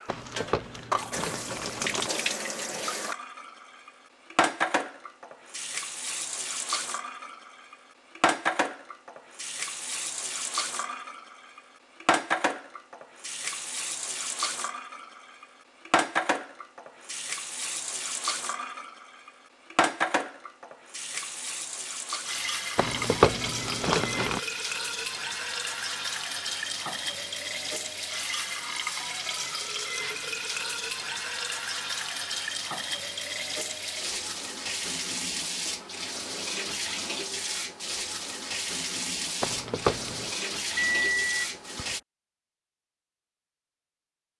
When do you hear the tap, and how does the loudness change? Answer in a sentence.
You can hear the tap from 0.0 to 42.0 s, at a steady volume.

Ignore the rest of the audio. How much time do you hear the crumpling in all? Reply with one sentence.
You can hear the crumpling for 5 seconds altogether.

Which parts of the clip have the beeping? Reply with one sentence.
You can hear the beeping from 40.8 to 42.0 s.